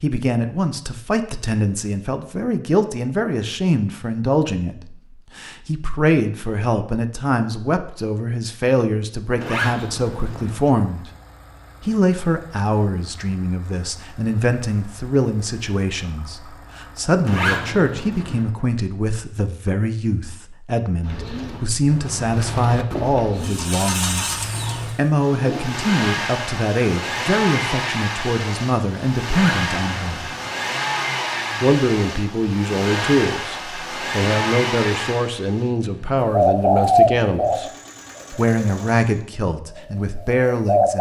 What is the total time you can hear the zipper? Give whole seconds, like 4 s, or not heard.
4 s.